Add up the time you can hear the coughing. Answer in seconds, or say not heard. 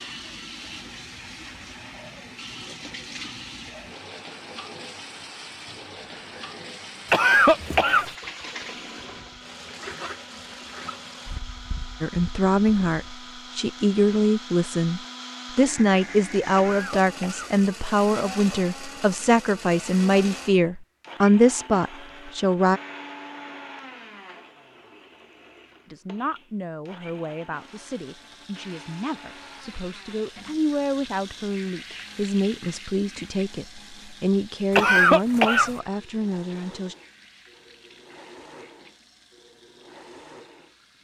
3 s.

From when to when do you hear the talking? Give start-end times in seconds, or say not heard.
12.0-22.8, 25.9-37.0.